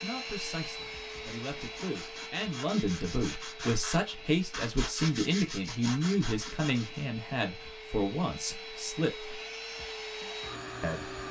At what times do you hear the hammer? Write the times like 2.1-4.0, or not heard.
not heard.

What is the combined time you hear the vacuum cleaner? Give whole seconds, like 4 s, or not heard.
11 s.